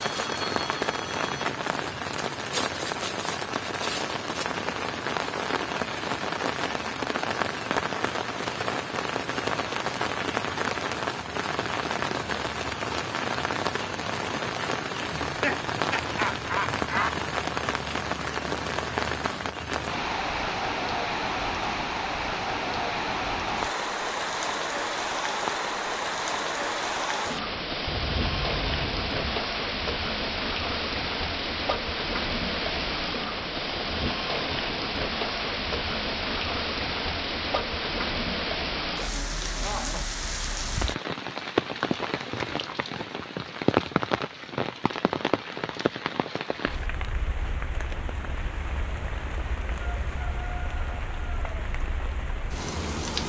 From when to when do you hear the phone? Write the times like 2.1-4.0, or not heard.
0.0-1.5, 27.9-29.4.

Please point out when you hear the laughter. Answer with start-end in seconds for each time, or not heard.
15.2-17.1, 39.5-40.1.